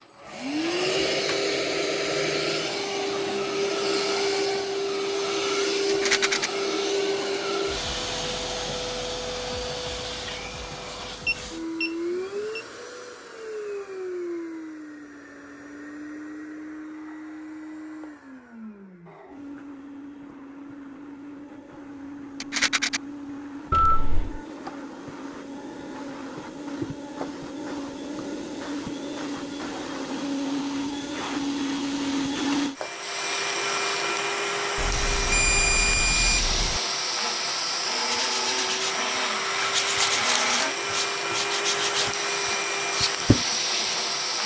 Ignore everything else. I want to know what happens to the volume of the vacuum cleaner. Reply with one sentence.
The loudness of the vacuum cleaner goes down, then up.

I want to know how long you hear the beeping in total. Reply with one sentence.
You can hear the beeping for 4 seconds altogether.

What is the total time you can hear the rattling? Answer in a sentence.
You can hear the rattling for 2 seconds altogether.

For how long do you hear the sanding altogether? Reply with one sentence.
The sanding can be heard for 6 seconds in total.